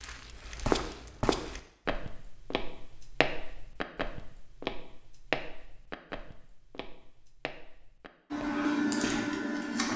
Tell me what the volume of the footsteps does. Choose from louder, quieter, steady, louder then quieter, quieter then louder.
quieter.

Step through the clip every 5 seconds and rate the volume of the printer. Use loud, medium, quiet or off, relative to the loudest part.
off, loud.